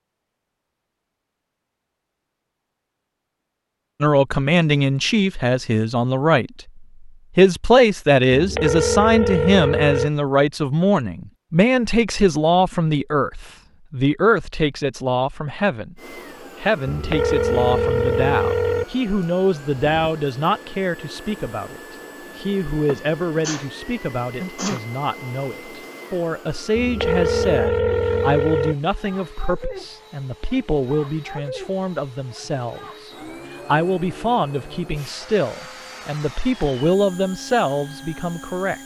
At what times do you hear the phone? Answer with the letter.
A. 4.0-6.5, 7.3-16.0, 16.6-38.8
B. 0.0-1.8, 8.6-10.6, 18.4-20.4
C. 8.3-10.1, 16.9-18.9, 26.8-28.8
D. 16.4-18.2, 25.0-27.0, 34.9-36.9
C.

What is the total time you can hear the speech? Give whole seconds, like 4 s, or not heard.
33 s.